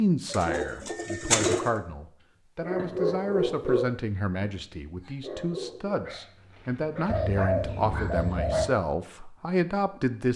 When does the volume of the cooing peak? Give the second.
1 s.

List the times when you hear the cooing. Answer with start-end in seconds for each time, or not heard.
0.3-1.6, 7.0-8.7.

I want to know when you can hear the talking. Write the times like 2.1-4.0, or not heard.
0.0-10.3.